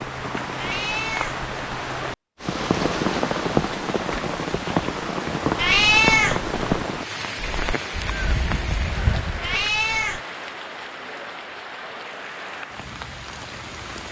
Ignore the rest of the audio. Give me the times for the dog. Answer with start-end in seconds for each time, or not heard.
not heard.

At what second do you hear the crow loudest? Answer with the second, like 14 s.
9 s.